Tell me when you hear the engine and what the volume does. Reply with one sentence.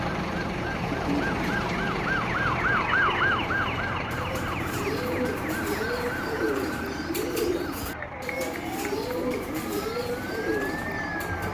The engine can be heard from 0.0 to 11.4 s, getting quieter.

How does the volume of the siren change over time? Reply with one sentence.
The volume of the siren goes down.